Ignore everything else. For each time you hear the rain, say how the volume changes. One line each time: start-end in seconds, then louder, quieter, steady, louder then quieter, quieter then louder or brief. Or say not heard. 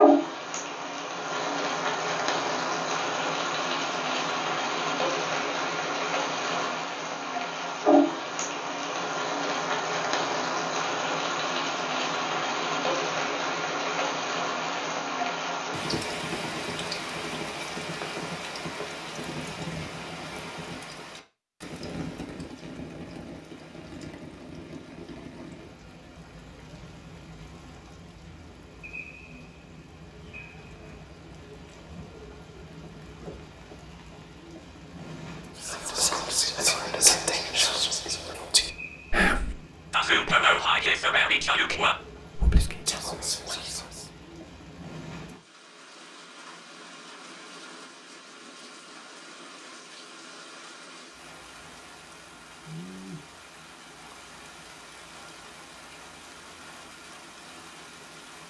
0.0-58.4 quieter.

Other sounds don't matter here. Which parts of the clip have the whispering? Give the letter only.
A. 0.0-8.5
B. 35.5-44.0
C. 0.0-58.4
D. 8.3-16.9
B.